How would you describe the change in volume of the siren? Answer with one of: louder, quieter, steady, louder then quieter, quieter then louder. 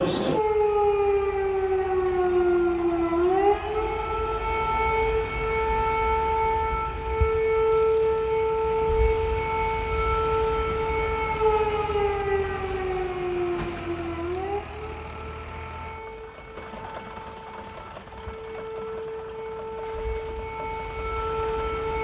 quieter.